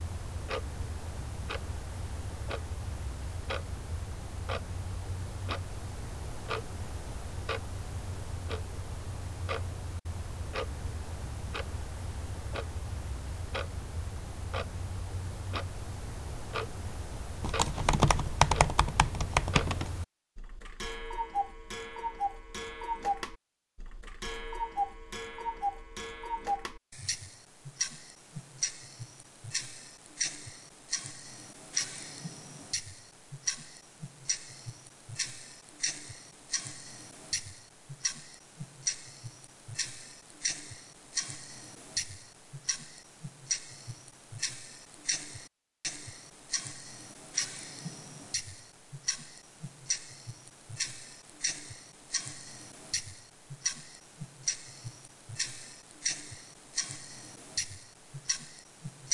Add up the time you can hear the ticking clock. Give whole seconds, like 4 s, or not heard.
59 s.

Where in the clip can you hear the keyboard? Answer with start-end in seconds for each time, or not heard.
17.4-19.9.